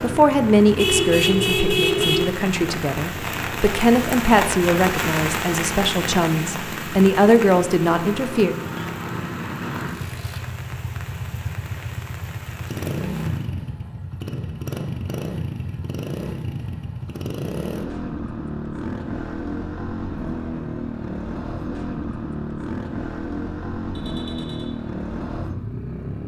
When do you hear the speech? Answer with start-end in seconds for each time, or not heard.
0.0-8.6.